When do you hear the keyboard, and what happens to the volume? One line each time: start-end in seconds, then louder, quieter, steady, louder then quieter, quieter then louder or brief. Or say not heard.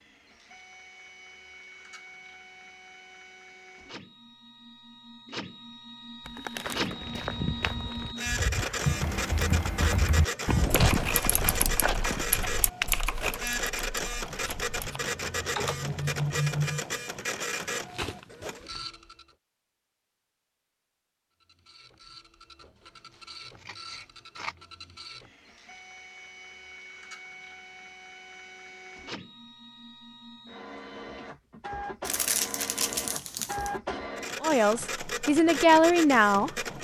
8.8-15.9 quieter.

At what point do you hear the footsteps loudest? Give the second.
11 s.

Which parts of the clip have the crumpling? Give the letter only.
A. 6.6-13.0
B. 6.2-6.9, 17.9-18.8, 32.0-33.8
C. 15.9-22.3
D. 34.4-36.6
B.